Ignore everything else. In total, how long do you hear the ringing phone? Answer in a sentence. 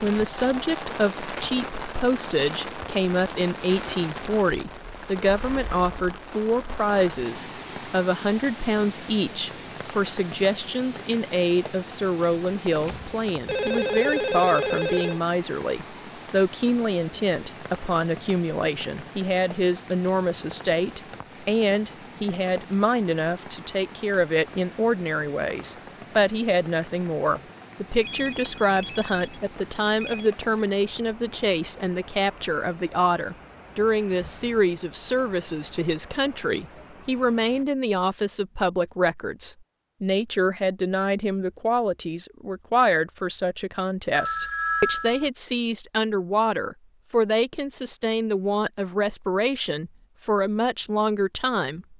You can hear the ringing phone for 6 seconds altogether.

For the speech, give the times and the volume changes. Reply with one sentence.
The speech can be heard from 0.0 to 51.9 s, at a steady volume.